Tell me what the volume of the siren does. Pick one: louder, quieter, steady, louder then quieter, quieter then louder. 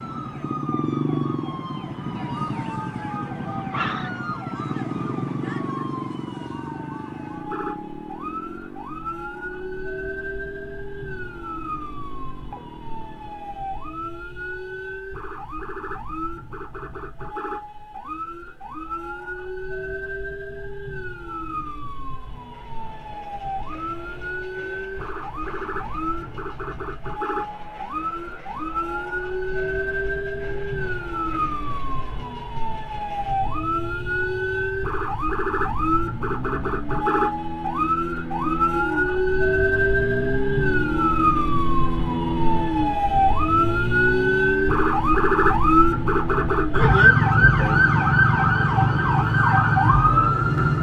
louder.